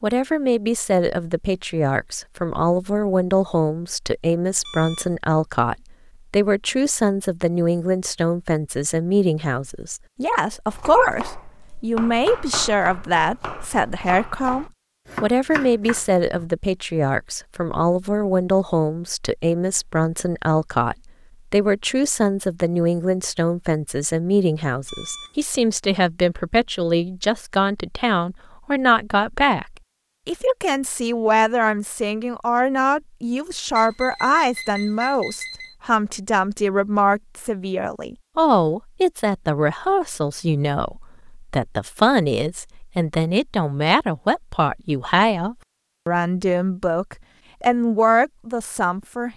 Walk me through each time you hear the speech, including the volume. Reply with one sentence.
The speech can be heard from 0.0 to 49.3 s, at a steady volume.